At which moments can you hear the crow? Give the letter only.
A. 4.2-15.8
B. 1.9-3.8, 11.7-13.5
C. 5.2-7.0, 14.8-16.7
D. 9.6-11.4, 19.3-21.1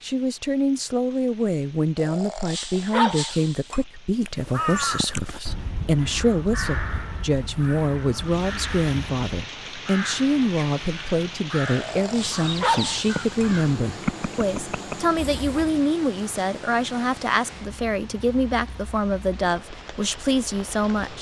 A.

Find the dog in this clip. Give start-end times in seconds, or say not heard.
1.9-3.8, 11.7-13.5.